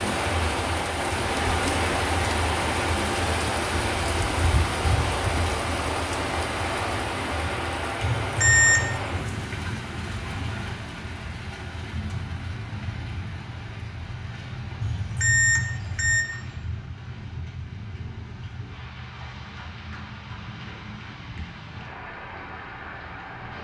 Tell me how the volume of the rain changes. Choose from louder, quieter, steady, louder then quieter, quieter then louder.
quieter.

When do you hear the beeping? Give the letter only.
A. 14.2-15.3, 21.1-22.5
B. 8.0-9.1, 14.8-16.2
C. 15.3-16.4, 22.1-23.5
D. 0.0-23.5
B.